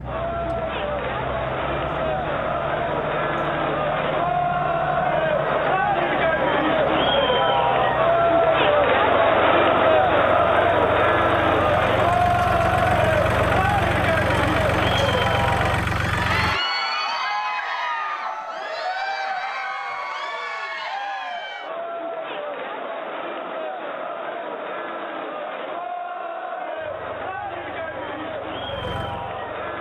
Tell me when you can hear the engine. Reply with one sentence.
You can hear the engine from 0.0 to 16.6 s and from 26.8 to 29.7 s.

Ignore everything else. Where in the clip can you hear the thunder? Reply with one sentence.
The thunder can't be heard in this clip.